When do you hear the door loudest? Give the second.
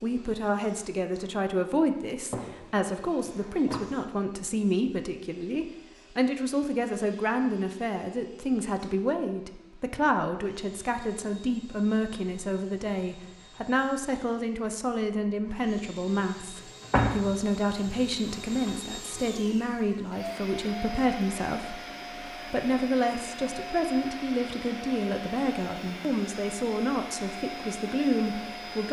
17 s.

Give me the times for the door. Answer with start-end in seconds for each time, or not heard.
2.3-3.8, 16.9-17.3.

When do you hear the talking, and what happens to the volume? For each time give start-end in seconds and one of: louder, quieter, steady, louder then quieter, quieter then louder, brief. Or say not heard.
0.0-28.8 steady.